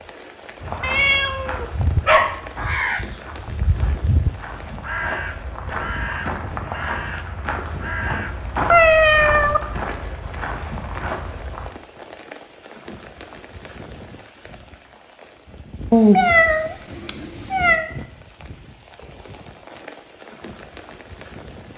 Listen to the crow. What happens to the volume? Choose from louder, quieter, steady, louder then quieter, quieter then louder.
quieter.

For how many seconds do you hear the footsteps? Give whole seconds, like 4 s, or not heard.
11 s.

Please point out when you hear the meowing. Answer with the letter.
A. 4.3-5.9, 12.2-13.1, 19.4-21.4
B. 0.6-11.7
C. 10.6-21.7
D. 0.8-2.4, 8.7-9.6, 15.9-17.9
D.